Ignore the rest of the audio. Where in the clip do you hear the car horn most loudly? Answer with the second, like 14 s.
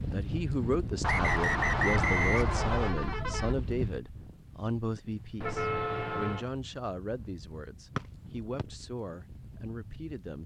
6 s.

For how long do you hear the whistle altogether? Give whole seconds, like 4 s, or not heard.
3 s.